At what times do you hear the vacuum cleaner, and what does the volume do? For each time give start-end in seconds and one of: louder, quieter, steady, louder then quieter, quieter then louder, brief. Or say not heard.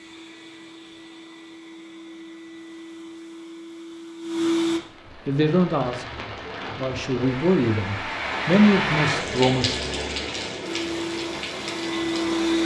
0.0-4.8 louder
10.6-12.6 brief.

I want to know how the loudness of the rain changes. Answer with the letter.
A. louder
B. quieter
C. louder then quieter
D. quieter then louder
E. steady
C.